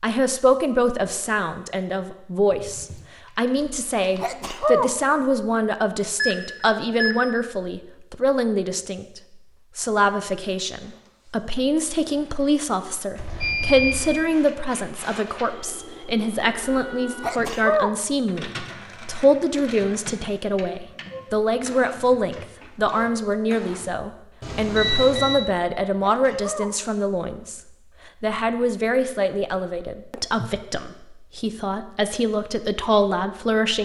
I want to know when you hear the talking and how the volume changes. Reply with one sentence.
The talking can be heard from 0.0 to 27.6 s, at a steady volume; and from 28.2 to 33.7 s, getting quieter then louder.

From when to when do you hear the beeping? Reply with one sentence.
The beeping can be heard from 6.2 to 7.2 s, from 13.2 to 14.2 s and from 24.4 to 25.4 s.